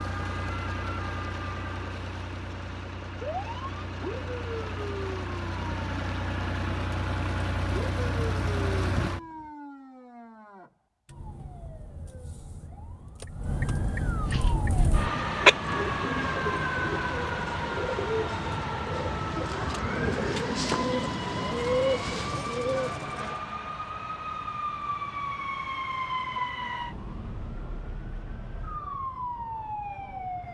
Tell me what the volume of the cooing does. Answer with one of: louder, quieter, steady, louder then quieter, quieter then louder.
louder.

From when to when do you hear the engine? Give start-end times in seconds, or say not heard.
0.0-9.4.